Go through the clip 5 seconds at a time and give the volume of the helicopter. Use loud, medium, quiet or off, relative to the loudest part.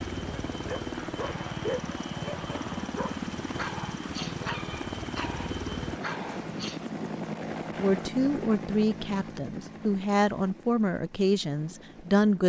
loud, loud, quiet.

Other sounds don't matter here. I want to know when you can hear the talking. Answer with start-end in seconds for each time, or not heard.
7.8-12.4.